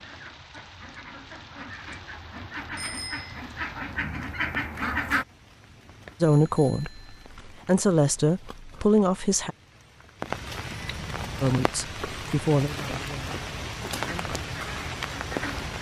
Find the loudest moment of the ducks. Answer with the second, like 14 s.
5 s.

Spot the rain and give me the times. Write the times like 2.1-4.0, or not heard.
0.0-15.7.